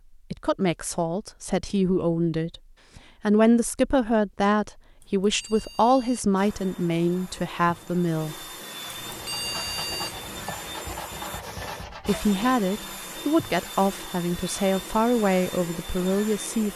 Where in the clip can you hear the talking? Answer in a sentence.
You can hear the talking from 0.3 to 8.3 s and from 12.1 to 16.7 s.